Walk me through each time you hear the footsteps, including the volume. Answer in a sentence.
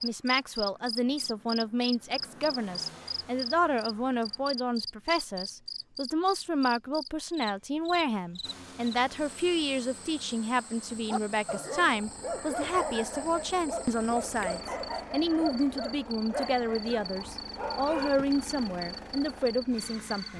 You can't hear the footsteps here.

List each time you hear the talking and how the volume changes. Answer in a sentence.
You can hear the talking from 0.0 to 20.3 s, at a steady volume.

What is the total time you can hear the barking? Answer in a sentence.
The barking can be heard for 7 seconds in total.